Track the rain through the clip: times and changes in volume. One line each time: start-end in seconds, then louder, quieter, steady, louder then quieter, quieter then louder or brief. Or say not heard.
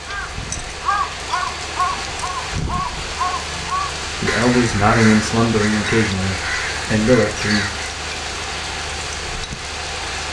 0.0-10.2 steady.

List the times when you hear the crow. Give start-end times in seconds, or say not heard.
0.1-7.9.